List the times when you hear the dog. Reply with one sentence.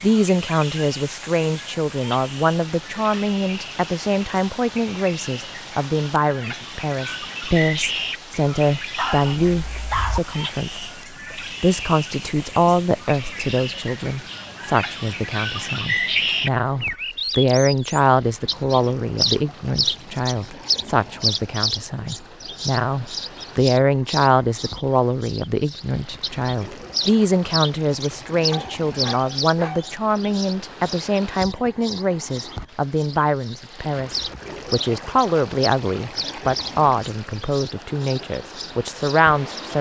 You can hear the dog from 8.9 to 10.2 s and from 28.5 to 29.9 s.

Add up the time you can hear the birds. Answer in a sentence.
The birds can be heard for 40 seconds in total.